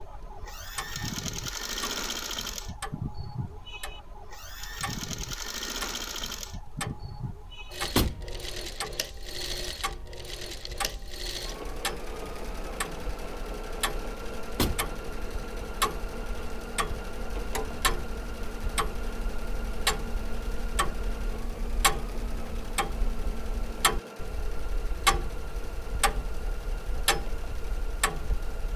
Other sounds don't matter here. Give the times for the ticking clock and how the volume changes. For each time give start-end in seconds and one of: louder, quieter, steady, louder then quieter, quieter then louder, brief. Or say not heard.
0.0-28.7 louder.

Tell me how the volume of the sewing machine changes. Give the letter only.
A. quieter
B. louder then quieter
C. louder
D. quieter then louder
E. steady
A.